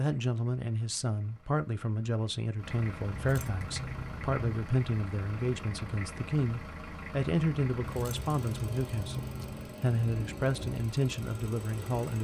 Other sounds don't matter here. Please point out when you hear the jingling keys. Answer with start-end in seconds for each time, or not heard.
3.1-4.3, 7.8-9.8.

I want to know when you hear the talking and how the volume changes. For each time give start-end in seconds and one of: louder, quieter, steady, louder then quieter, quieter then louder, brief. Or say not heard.
0.0-12.1 steady.